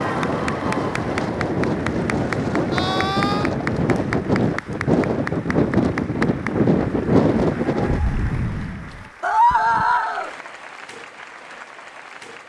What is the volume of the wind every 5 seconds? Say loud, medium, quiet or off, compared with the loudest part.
loud, loud, off.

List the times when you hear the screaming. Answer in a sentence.
You can hear the screaming from 2.7 to 3.5 s and from 9.2 to 10.3 s.